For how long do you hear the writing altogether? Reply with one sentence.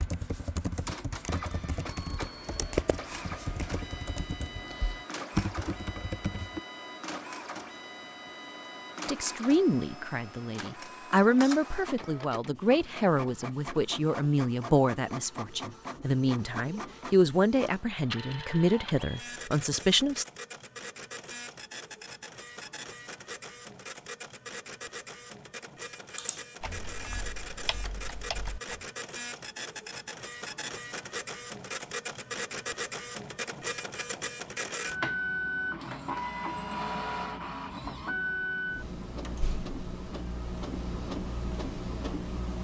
You can't hear the writing here.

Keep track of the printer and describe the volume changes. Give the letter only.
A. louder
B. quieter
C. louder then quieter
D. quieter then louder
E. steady
A.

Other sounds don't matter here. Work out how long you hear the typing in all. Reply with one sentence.
You can hear the typing for 9 seconds altogether.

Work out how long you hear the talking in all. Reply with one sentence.
You can hear the talking for 11 seconds altogether.